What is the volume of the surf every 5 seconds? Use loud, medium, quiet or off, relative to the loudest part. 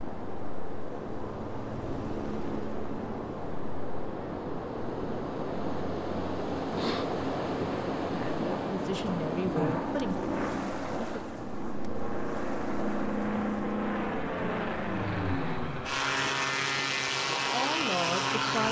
medium, loud, medium, medium.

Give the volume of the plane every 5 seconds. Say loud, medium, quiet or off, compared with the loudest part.
medium, medium, loud, loud.